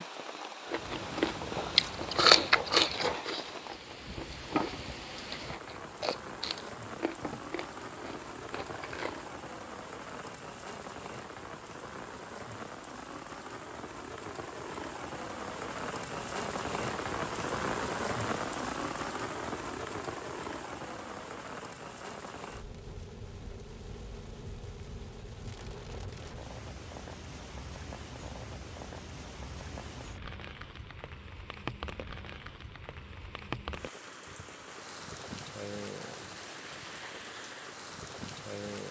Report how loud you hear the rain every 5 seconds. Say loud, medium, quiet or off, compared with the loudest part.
medium, medium, medium, loud, medium, medium, medium, medium.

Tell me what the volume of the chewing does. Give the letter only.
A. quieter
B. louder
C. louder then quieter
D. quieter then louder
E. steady
A.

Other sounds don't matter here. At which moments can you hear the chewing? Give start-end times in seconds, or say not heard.
0.7-9.3.